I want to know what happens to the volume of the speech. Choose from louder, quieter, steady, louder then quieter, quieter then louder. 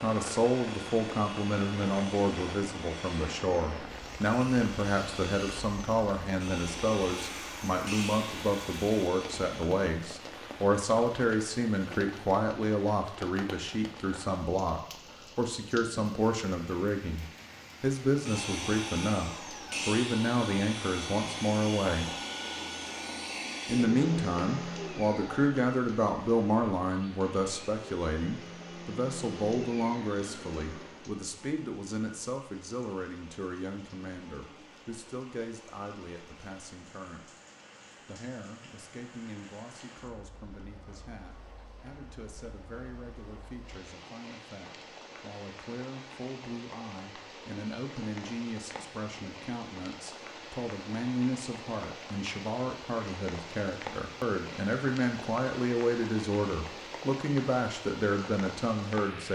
quieter then louder.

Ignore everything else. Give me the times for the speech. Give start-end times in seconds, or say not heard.
0.0-22.1, 23.6-37.2, 38.0-59.3.